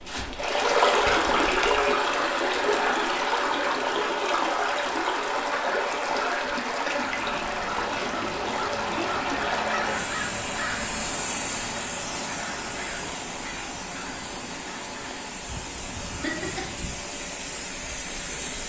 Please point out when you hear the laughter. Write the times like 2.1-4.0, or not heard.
16.2-16.8.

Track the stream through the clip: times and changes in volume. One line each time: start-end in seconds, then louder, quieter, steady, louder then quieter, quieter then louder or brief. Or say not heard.
0.0-18.6 quieter.